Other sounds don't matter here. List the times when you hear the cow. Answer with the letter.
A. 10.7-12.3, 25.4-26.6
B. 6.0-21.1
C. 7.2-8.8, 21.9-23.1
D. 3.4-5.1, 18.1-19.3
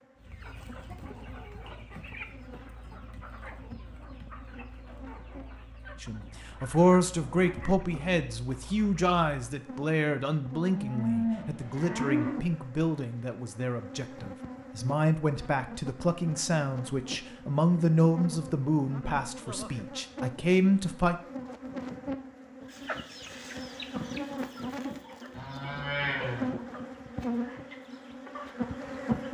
A.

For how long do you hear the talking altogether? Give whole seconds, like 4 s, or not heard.
15 s.